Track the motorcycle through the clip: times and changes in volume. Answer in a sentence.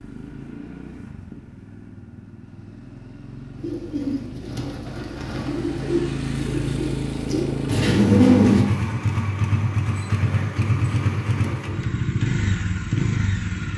You can hear the motorcycle from 0.0 to 13.7 s, getting louder.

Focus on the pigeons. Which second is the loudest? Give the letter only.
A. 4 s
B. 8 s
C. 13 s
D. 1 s
B.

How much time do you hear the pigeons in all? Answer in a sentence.
You can hear the pigeons for 5 seconds altogether.